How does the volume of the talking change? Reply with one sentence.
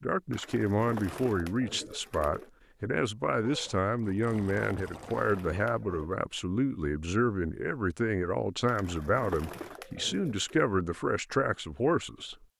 The volume of the talking stays about the same.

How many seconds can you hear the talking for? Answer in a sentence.
The talking can be heard for 12 seconds in total.